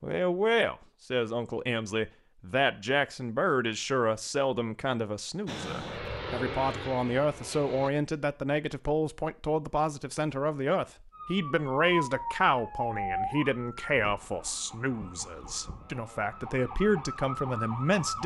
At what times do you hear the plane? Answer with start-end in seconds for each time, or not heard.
5.5-7.9.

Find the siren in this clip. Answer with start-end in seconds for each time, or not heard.
11.1-18.2.